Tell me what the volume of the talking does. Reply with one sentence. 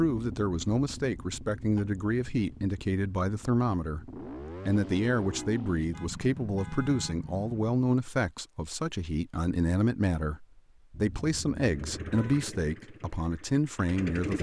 The volume of the talking stays about the same.